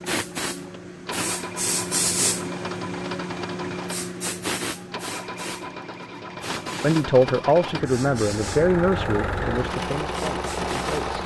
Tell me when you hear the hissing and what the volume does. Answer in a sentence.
The hissing can be heard from 0.0 to 11.2 s, getting quieter.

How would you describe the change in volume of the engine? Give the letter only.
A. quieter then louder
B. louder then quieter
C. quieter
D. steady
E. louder
E.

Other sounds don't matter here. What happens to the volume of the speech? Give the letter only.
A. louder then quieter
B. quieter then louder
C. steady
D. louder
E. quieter
E.